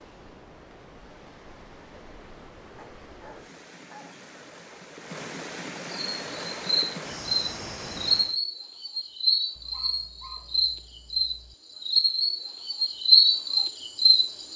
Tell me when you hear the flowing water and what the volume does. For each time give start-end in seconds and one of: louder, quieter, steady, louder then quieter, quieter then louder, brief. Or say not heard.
0.0-8.4 louder.